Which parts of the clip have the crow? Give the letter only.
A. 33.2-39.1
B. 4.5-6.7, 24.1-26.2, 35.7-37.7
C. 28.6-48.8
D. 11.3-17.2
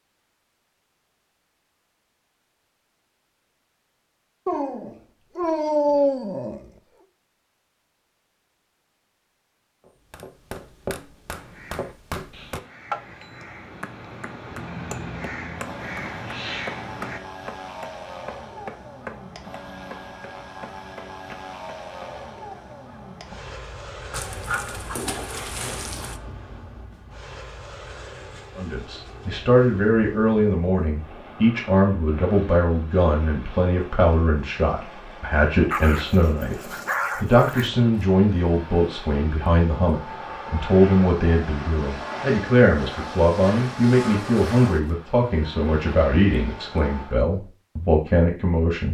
D.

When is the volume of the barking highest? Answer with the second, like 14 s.
6 s.